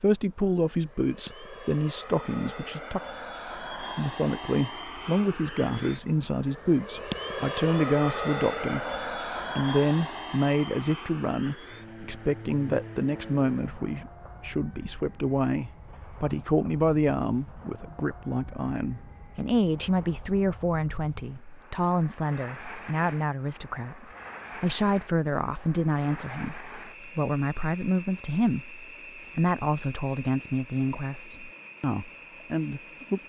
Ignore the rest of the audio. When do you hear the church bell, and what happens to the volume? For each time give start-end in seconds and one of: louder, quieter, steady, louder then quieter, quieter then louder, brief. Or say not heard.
not heard.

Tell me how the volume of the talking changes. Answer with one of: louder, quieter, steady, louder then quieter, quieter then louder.
steady.